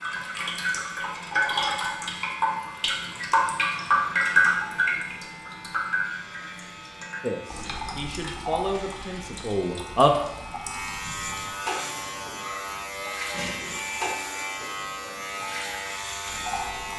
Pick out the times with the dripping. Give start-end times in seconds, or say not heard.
0.0-16.9.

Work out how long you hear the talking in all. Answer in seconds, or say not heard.
3 s.